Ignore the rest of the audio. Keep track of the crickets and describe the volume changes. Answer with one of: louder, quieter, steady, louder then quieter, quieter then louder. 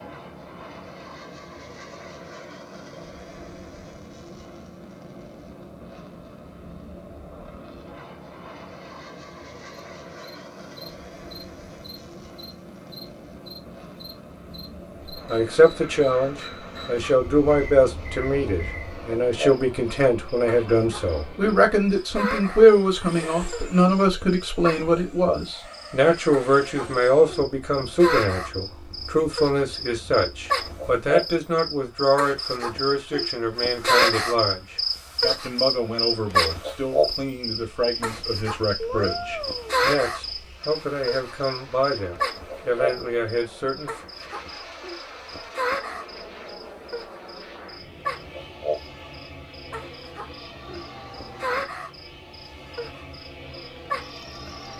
louder then quieter.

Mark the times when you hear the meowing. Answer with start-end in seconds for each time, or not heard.
38.8-39.9.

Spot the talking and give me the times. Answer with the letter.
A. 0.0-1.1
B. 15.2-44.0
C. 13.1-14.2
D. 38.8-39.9
B.